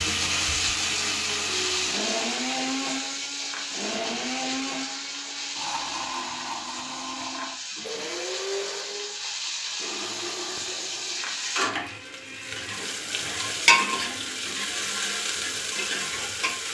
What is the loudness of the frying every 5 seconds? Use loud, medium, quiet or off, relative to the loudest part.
loud, medium, loud, loud.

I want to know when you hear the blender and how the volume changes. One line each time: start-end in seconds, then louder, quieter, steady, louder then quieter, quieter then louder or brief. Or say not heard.
0.0-16.6 quieter.